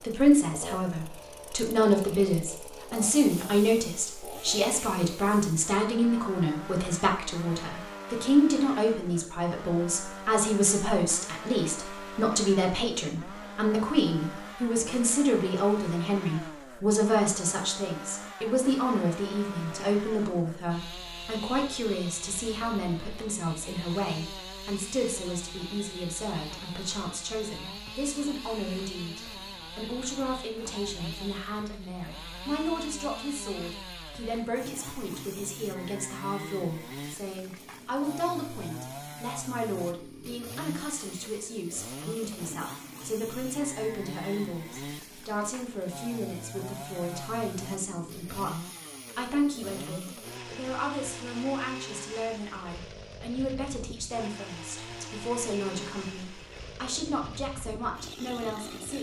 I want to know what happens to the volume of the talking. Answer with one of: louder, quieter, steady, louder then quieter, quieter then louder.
quieter.